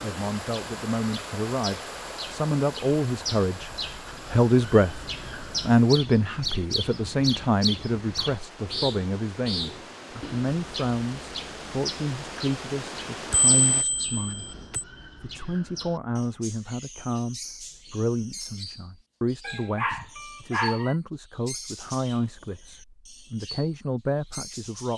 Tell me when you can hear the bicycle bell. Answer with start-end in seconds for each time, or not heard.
13.3-14.8.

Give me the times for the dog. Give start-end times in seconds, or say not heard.
19.4-20.9.